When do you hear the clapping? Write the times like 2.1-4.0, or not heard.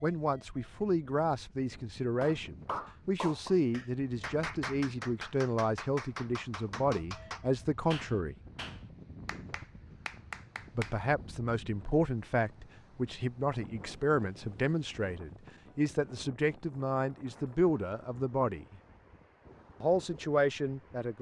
2.2-10.9.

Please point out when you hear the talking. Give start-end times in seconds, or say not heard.
0.0-8.3, 10.8-18.8, 19.8-21.1.